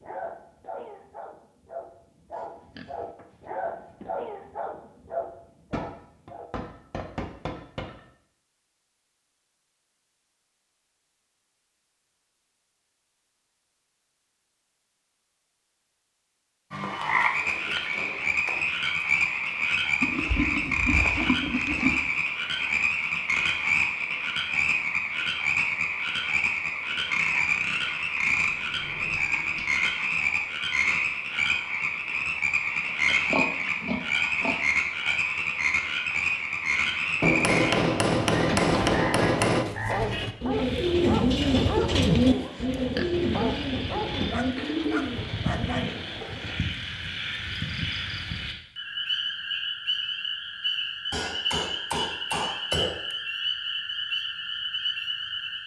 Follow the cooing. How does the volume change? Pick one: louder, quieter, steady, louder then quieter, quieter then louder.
louder then quieter.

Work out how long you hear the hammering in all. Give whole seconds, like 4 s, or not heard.
10 s.